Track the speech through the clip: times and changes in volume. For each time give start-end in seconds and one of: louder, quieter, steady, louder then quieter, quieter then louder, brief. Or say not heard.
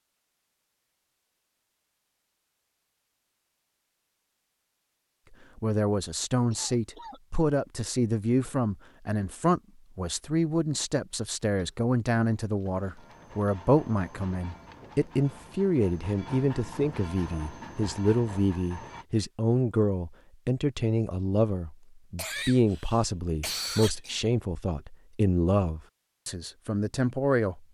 5.5-27.6 steady.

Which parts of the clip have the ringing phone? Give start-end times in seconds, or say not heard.
not heard.